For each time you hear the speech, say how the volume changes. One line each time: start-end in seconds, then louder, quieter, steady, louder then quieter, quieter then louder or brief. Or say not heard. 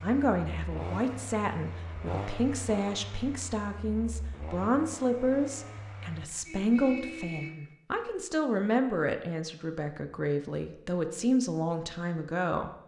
0.0-12.7 steady.